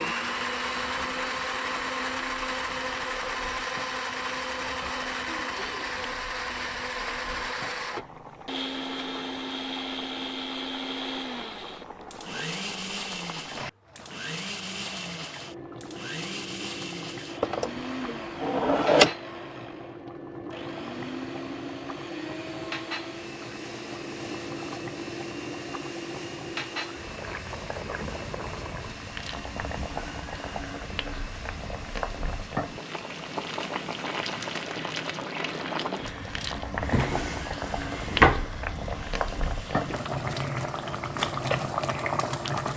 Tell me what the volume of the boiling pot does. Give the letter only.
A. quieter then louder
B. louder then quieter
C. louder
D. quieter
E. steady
C.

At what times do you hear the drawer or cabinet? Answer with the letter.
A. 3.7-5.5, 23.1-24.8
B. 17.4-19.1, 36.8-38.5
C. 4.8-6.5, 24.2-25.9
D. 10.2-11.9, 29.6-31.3
B.